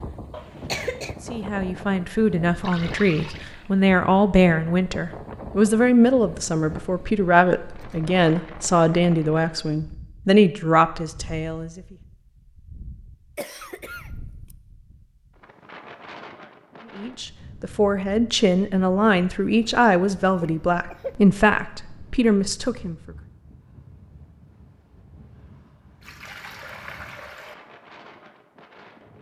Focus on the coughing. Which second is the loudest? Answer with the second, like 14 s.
1 s.